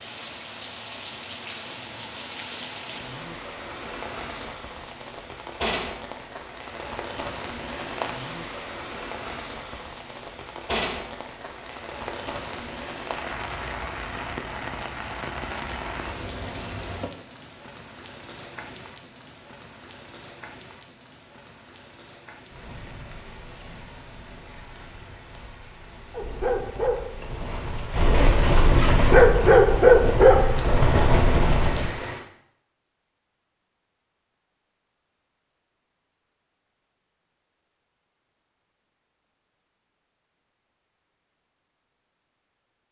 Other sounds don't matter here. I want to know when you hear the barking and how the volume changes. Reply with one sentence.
The barking can be heard from 26.1 to 31.9 s, getting louder then quieter.